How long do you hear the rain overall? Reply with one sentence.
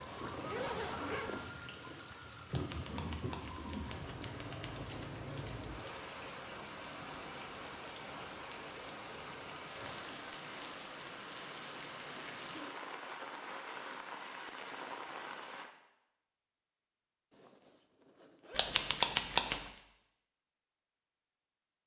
The rain can be heard for 16 seconds in total.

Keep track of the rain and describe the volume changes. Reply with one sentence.
The loudness of the rain stays about the same.